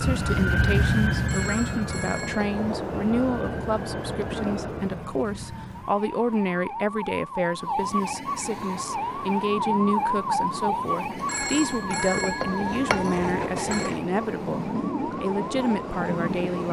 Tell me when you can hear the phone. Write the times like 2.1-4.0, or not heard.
1.1-2.7, 11.2-13.9.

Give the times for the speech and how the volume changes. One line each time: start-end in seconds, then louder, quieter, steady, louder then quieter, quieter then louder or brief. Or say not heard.
0.0-16.6 steady.